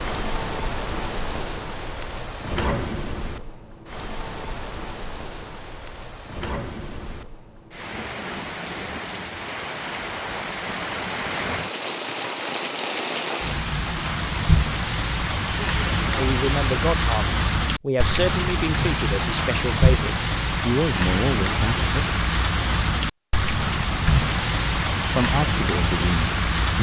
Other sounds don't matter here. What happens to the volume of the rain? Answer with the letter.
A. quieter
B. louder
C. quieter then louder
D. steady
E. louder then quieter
B.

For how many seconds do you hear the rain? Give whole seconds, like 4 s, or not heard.
27 s.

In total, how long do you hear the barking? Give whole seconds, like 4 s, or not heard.
not heard.